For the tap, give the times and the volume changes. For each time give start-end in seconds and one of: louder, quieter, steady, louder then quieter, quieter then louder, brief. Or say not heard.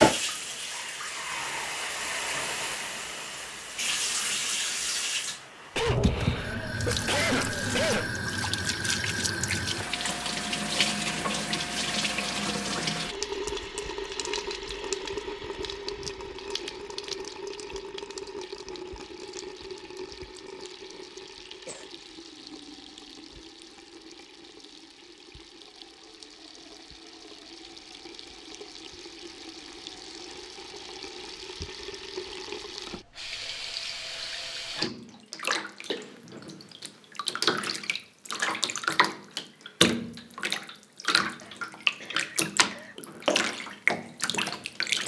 0.0-45.0 quieter then louder.